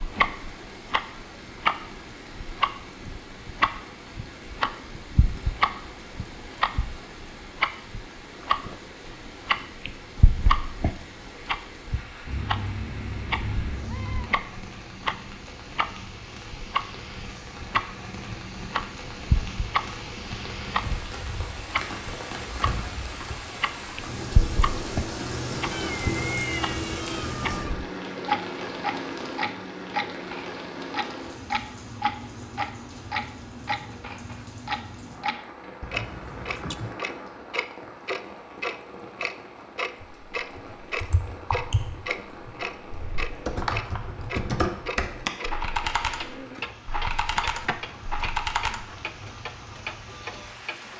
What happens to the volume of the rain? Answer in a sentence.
The volume of the rain goes up, then down.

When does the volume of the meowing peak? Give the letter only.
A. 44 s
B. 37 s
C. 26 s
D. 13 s
C.